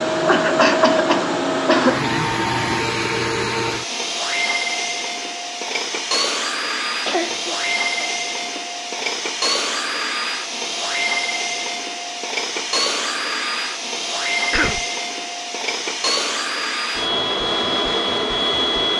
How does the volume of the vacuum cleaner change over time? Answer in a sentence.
The loudness of the vacuum cleaner stays about the same.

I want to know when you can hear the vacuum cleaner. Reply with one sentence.
You can hear the vacuum cleaner from 0.0 to 18.9 s.